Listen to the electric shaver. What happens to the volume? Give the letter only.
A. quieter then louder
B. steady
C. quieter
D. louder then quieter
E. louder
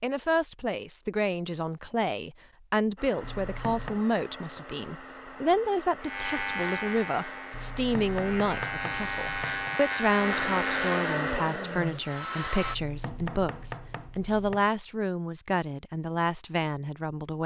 A.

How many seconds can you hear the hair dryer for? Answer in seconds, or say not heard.
10 s.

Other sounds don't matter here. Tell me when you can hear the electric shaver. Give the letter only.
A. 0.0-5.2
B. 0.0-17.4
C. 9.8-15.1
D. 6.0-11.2
D.